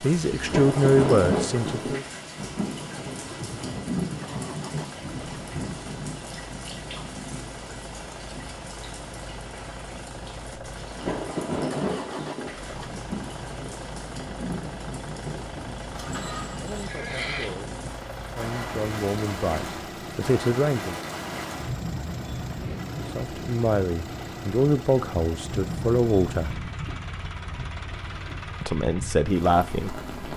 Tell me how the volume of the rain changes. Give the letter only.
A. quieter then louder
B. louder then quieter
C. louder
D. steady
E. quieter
E.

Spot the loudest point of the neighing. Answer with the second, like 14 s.
17 s.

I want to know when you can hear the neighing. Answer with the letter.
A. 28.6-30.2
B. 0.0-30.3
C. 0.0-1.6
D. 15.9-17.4
D.